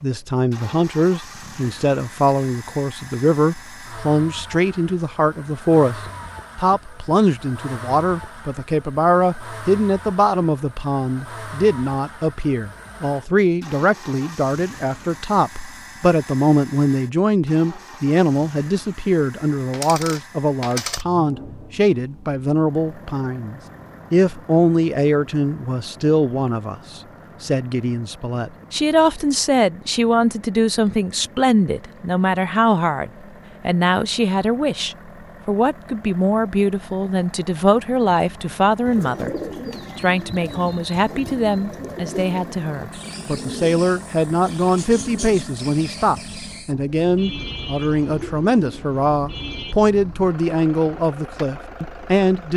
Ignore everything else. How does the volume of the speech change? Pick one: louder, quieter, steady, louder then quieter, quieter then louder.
steady.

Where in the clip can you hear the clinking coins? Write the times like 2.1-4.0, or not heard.
19.7-21.1.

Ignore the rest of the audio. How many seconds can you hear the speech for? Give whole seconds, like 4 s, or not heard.
52 s.